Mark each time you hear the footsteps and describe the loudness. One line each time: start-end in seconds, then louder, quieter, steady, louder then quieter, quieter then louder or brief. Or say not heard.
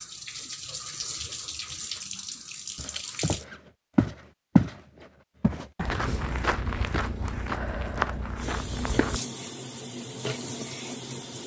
2.8-9.2 louder then quieter.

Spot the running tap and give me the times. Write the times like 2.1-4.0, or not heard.
0.0-3.5, 8.3-11.4.